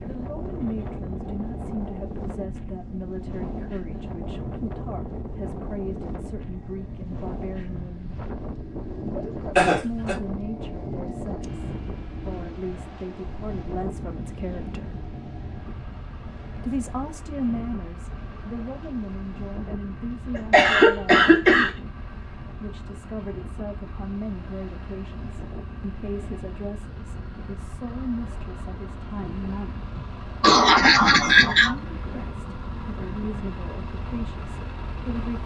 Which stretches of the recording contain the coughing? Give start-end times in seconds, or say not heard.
9.6-10.2, 20.4-21.7, 29.9-31.8.